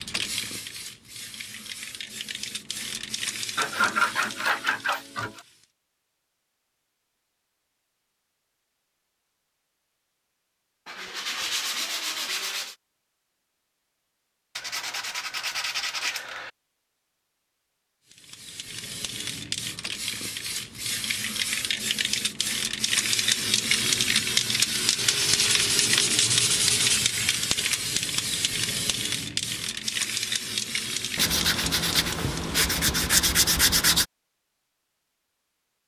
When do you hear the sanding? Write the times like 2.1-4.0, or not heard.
3.5-5.4, 10.8-12.8, 14.6-16.5, 24.9-27.0, 31.1-34.0.